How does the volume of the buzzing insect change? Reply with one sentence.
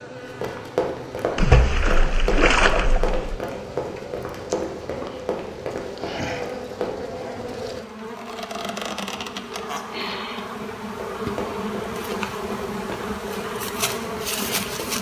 The volume of the buzzing insect goes up.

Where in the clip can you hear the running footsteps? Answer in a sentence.
You can hear the running footsteps from 0.2 to 7.0 s and from 10.9 to 14.9 s.